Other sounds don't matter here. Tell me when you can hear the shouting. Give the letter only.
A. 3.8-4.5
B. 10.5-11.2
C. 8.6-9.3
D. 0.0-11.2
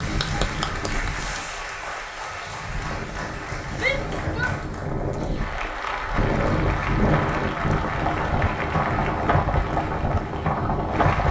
A.